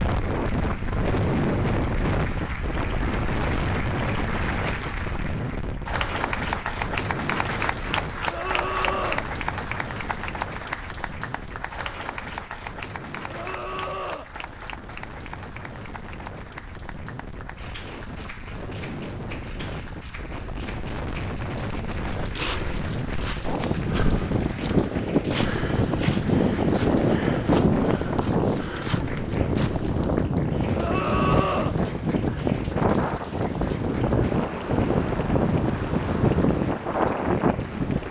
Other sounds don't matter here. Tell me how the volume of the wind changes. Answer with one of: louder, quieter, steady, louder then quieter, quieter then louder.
quieter then louder.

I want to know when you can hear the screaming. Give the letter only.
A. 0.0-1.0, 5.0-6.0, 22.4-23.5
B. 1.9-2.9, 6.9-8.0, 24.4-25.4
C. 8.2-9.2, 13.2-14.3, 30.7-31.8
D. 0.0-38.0
C.